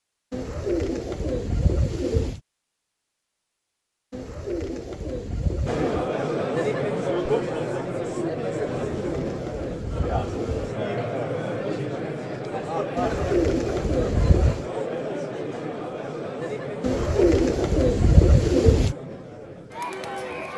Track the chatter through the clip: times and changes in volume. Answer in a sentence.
You can hear the chatter from 5.7 to 20.5 s, getting quieter.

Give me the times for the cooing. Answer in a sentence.
The cooing can be heard from 0.3 to 2.4 s, from 4.1 to 6.0 s, from 8.9 to 10.8 s, from 12.9 to 14.7 s and from 16.8 to 18.9 s.